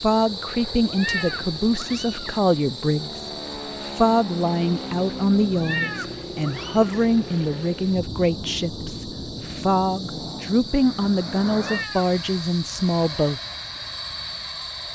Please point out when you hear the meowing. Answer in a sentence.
You can hear the meowing from 0.8 to 2.4 s, from 5.5 to 7.0 s and from 11.6 to 12.1 s.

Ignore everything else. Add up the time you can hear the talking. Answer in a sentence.
You can hear the talking for 13 seconds altogether.